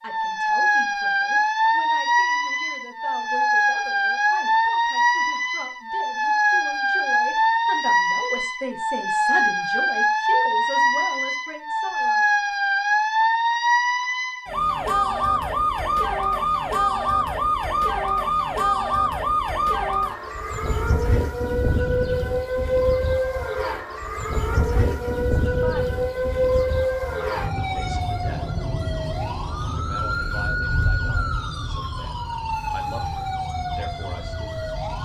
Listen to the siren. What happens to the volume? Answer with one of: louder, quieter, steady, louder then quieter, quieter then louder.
quieter.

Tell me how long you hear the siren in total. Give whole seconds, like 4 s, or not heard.
35 s.